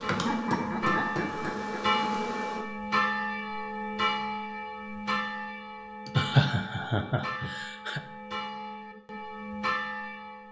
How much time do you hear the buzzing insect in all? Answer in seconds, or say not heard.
3 s.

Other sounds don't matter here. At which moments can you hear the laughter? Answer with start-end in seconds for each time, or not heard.
0.2-2.0, 6.0-8.0.